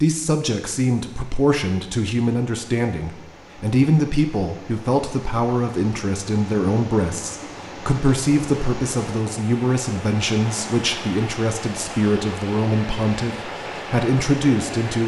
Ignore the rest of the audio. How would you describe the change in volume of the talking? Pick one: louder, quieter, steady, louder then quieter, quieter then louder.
steady.